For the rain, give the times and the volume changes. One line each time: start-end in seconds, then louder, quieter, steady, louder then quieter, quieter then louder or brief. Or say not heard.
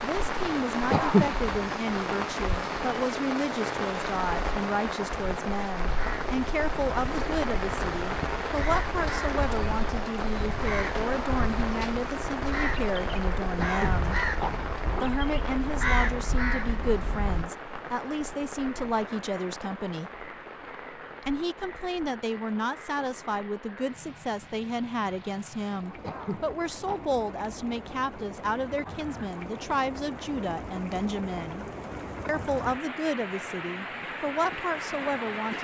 0.0-35.5 quieter then louder.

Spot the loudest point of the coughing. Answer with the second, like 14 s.
1 s.